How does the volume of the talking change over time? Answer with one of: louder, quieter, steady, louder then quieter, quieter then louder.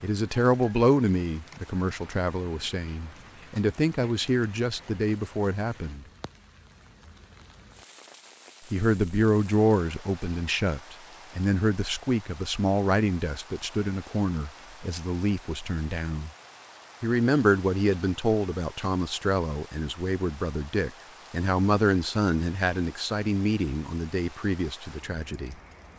steady.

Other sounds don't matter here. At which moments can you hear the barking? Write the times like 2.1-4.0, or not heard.
not heard.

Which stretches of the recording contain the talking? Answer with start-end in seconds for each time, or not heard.
0.0-6.0, 8.7-16.3, 17.0-25.6.